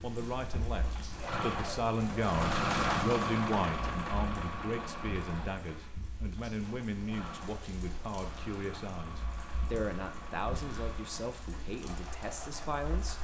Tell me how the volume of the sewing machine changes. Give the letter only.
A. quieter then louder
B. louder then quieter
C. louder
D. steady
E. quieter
E.